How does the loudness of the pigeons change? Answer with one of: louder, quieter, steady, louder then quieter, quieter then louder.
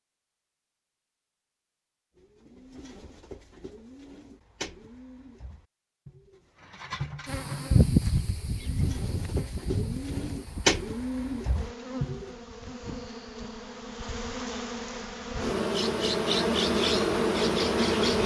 louder.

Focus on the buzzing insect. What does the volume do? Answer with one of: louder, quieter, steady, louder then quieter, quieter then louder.
quieter then louder.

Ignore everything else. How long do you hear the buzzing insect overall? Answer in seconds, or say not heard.
11 s.